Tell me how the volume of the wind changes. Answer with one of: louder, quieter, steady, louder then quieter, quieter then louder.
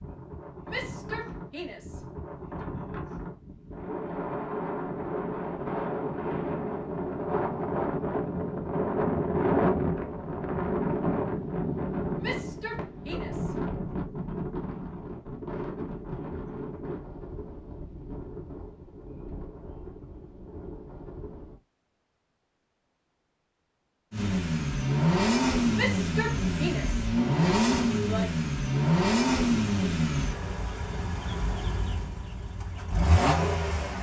louder then quieter.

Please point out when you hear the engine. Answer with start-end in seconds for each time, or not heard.
24.1-33.9.